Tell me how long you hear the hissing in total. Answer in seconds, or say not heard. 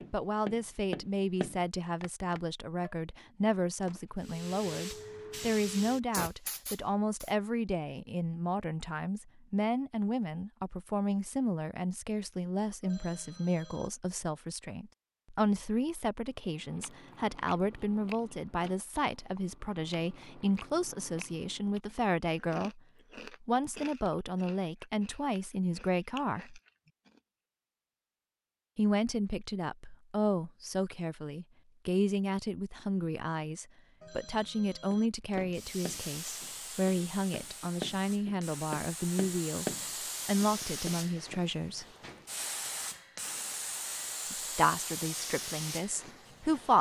14 s.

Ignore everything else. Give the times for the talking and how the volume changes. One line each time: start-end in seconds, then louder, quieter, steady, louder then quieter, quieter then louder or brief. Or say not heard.
0.1-26.6 steady
28.8-39.6 steady
40.2-41.9 brief
44.2-46.7 brief.